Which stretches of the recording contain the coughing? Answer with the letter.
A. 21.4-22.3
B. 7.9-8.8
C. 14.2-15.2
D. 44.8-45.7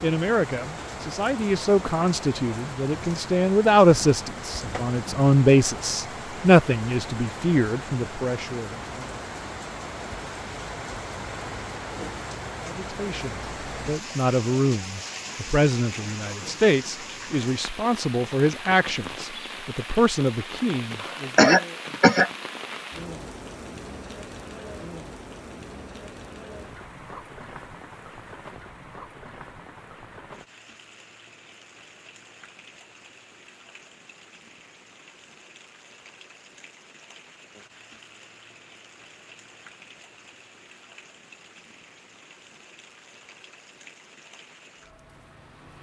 A.